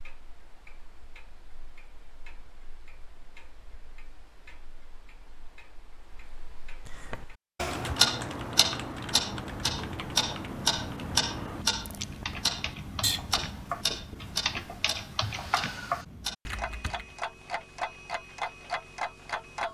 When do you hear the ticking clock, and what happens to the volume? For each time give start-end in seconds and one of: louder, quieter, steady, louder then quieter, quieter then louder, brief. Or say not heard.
0.0-19.6 louder then quieter.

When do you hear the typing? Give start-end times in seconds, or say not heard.
6.8-17.1.